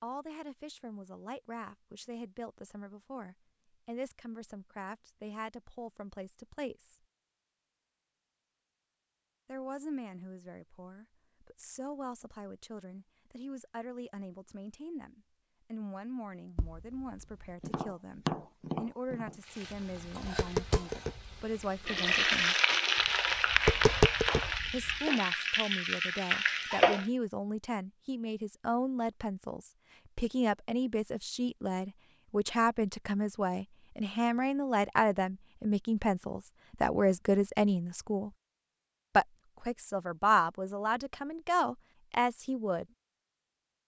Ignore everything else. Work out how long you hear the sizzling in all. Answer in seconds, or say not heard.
8 s.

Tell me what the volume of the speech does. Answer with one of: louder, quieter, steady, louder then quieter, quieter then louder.
louder.